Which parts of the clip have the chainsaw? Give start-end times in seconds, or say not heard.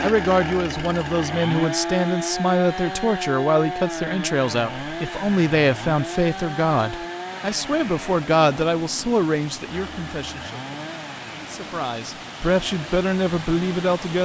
0.0-14.1.